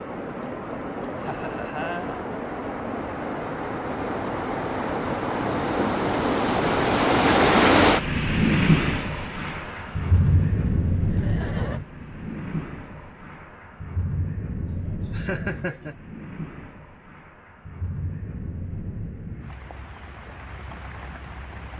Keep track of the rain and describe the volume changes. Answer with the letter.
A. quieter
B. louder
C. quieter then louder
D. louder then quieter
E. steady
D.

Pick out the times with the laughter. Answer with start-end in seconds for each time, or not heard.
1.2-2.2, 11.1-11.8, 14.7-15.9.